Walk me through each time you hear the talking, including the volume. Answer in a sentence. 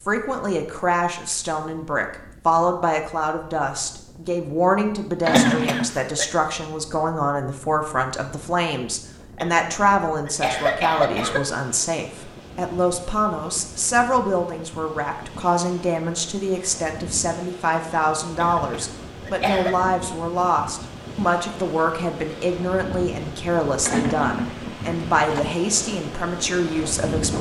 The talking can be heard from 0.1 to 27.3 s, at a steady volume.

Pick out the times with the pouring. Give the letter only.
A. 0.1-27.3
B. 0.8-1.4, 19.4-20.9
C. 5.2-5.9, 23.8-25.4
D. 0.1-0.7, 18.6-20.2
C.